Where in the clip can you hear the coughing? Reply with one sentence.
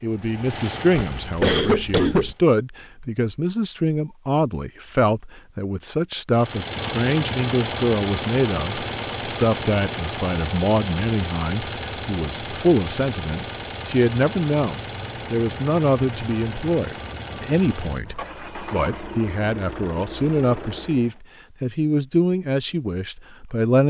You can hear the coughing from 0.9 to 2.4 s.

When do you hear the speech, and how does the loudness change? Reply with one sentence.
The speech can be heard from 0.0 to 23.8 s, at a steady volume.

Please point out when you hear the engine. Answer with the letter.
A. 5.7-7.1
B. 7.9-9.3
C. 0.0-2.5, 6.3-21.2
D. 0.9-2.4
C.